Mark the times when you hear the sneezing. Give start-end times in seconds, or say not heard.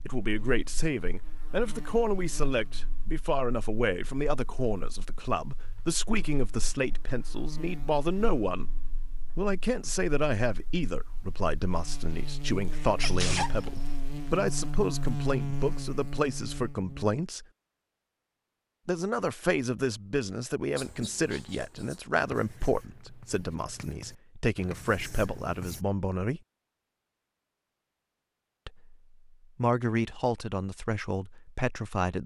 12.8-14.3.